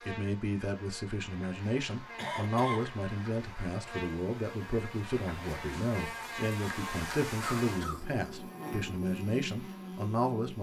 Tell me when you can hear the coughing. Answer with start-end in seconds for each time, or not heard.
2.1-2.9, 7.4-8.2.